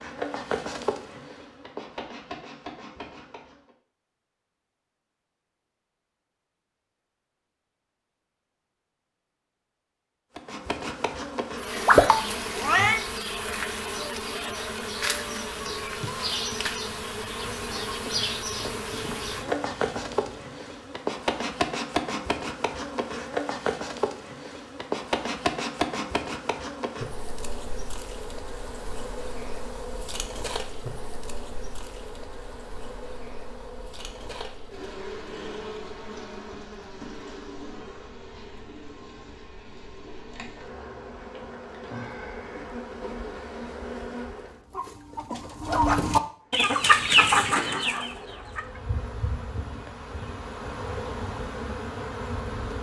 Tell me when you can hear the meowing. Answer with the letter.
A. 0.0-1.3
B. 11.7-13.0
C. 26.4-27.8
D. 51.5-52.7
B.